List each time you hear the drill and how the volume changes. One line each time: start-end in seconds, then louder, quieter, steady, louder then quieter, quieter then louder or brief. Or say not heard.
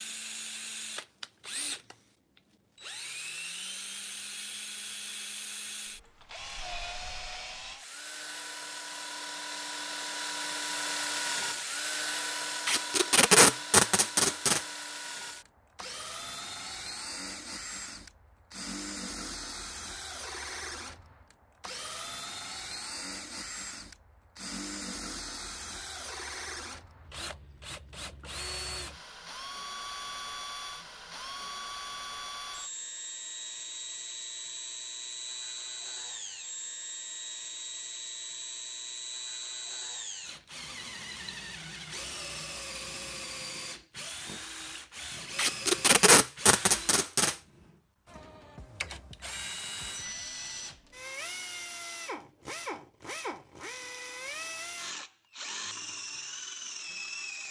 0.0-57.4 steady.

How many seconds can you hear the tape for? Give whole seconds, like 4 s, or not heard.
4 s.